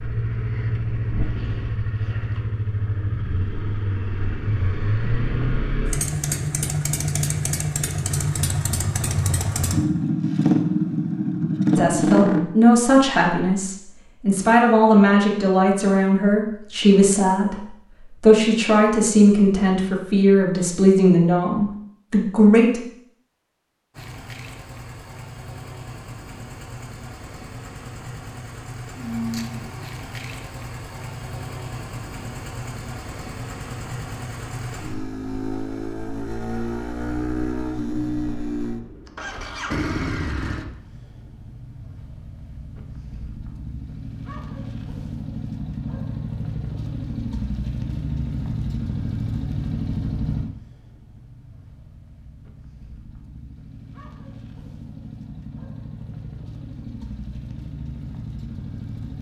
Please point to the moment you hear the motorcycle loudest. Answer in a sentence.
The volume of the motorcycle peaks at 12 seconds.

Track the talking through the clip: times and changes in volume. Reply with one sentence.
You can hear the talking from 11.8 to 22.9 s, at a steady volume.